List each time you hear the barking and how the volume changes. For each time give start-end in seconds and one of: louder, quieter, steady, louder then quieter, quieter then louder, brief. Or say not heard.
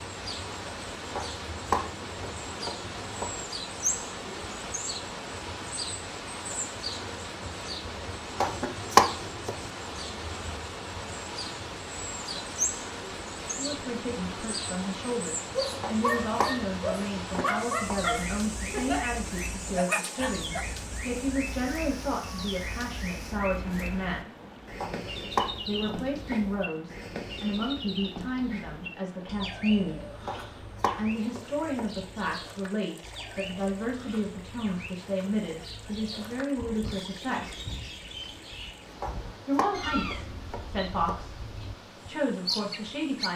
15.6-20.6 steady.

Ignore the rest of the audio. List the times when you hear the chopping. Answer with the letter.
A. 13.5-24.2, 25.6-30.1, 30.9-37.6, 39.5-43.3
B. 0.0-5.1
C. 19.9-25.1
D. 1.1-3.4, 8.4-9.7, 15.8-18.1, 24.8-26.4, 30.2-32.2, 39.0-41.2
D.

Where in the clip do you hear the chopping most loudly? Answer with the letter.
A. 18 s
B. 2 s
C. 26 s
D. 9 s
D.